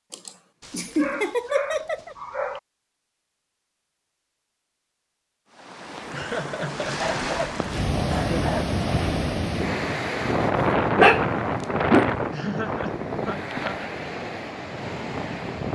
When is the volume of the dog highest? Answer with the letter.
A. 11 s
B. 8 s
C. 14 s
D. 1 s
A.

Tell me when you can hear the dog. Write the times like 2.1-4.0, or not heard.
0.6-2.6, 7.0-8.8, 10.9-12.1.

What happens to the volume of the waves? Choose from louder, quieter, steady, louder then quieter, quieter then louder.
louder then quieter.